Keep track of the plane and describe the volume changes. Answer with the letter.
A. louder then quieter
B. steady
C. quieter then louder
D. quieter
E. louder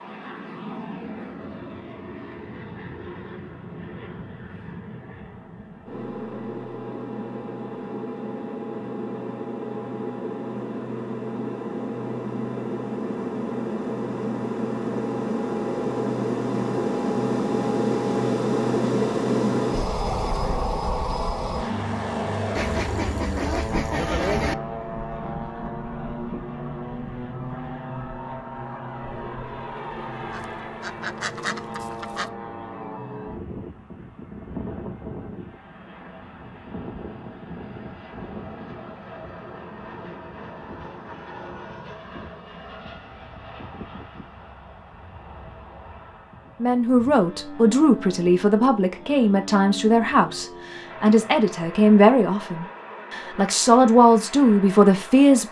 A.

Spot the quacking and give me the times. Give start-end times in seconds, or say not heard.
22.6-24.6, 30.3-32.3.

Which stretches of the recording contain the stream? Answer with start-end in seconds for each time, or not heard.
not heard.